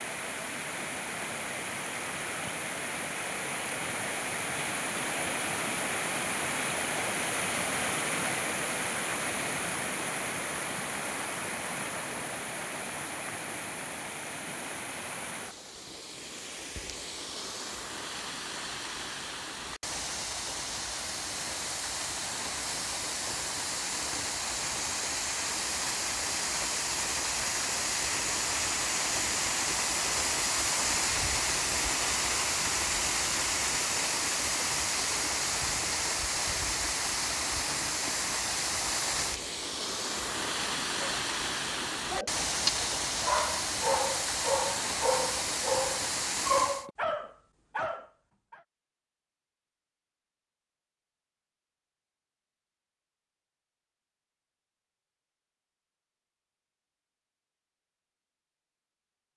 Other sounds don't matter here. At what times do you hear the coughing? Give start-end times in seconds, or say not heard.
not heard.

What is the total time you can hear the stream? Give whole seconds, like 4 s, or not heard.
47 s.